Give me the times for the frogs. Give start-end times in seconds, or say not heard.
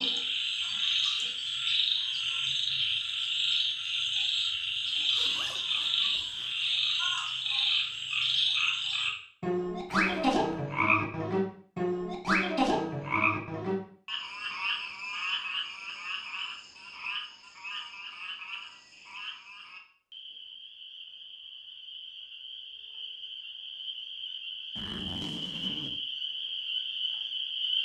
0.0-27.8.